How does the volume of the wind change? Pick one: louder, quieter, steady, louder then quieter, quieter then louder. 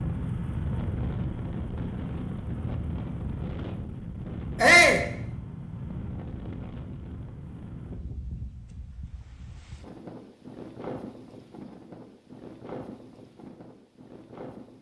quieter.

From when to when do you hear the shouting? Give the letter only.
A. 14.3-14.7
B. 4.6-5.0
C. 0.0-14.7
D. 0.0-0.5
B.